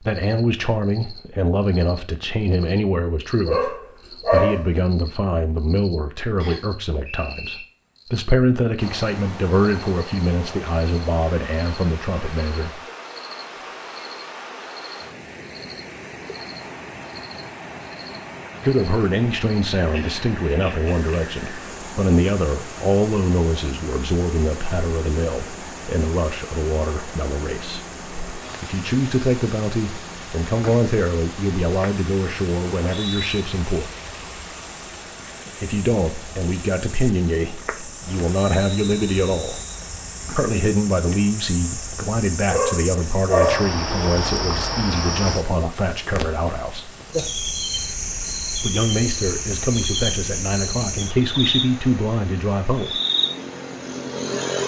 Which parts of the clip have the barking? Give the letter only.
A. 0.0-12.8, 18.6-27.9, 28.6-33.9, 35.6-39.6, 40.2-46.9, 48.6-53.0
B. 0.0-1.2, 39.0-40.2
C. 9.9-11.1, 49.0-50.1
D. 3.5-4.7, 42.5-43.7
D.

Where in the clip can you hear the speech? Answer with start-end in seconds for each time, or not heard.
0.0-12.8, 18.6-27.9, 28.6-33.9, 35.6-39.6, 40.2-46.9, 48.6-53.0.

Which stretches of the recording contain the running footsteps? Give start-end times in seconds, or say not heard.
not heard.